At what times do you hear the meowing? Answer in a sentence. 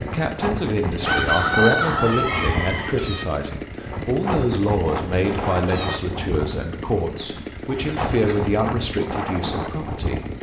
The meowing can be heard from 2.5 to 3.4 s and from 5.2 to 6.0 s.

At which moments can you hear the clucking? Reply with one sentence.
You can hear the clucking from 1.1 to 3.0 s and from 7.2 to 8.6 s.